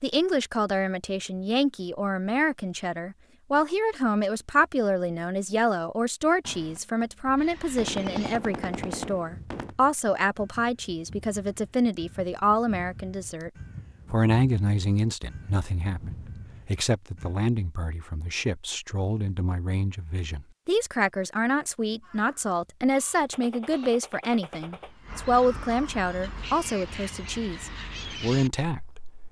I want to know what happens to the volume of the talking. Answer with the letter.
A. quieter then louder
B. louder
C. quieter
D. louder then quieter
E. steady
E.